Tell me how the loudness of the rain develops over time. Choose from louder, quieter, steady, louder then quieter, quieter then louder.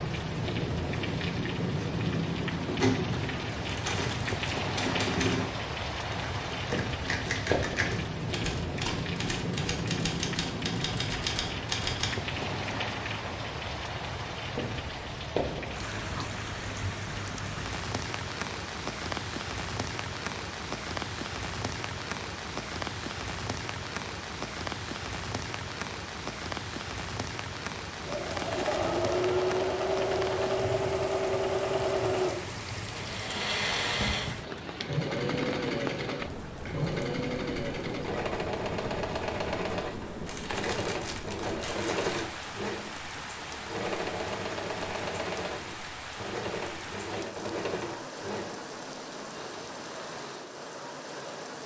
quieter.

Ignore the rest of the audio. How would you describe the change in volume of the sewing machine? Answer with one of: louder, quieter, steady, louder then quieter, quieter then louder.
quieter.